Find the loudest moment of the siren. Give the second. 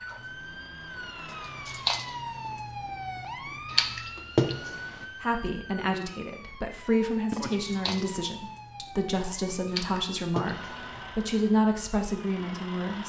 4 s.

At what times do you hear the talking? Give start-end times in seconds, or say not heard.
5.2-13.0.